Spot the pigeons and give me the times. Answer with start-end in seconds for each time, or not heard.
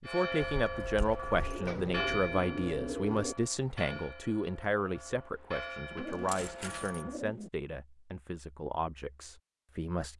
1.3-3.4, 5.9-7.5.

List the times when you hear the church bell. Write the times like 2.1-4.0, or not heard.
0.1-7.2.